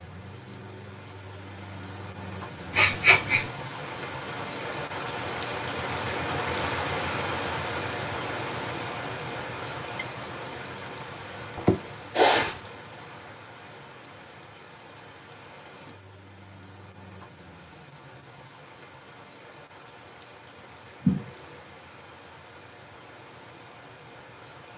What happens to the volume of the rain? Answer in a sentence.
The volume of the rain goes up, then down.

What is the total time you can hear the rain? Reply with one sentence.
The rain can be heard for 25 seconds in total.